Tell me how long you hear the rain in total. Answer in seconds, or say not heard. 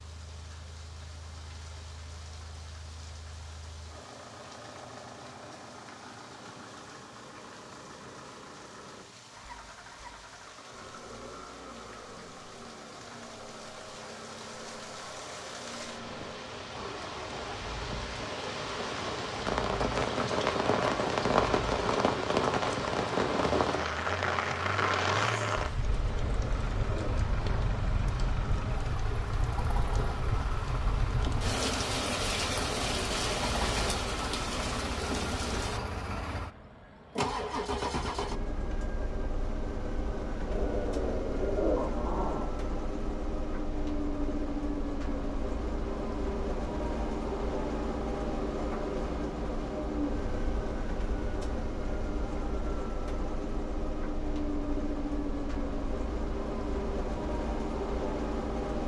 36 s.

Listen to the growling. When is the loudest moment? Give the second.
42 s.